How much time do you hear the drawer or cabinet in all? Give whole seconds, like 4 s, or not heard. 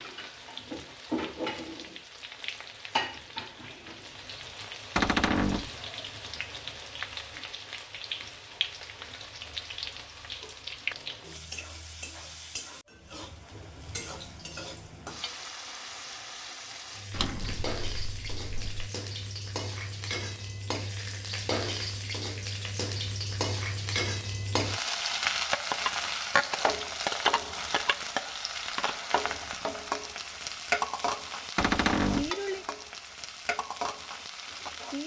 3 s.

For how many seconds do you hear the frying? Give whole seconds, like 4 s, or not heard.
35 s.